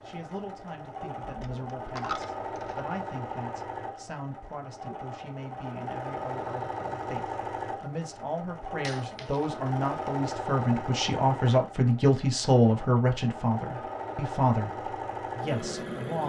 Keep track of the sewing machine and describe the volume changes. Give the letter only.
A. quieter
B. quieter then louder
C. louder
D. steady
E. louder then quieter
D.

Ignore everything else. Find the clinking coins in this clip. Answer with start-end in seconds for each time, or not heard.
1.2-2.8, 8.8-9.5.